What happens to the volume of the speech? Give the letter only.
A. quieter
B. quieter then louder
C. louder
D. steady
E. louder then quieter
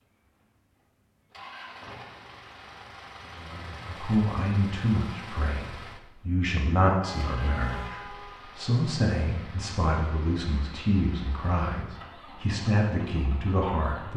D.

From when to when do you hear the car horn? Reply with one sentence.
You can hear the car horn from 7.0 to 8.4 s.